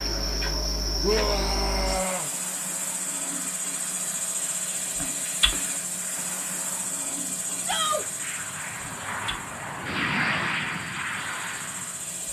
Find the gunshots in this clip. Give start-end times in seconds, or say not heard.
not heard.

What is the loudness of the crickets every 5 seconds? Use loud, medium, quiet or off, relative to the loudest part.
loud, loud, medium.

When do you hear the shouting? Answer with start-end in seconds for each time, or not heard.
1.0-2.3, 7.6-8.1.